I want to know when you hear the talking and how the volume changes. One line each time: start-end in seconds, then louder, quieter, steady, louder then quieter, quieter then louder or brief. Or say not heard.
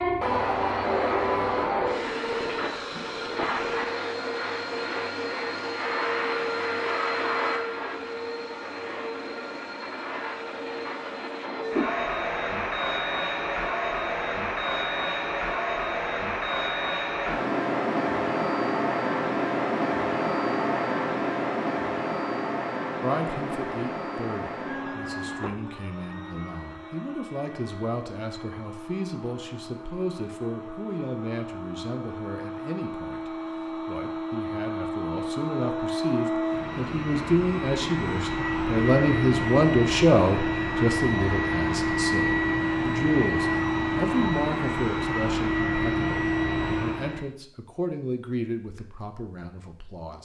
23.0-50.2 louder then quieter.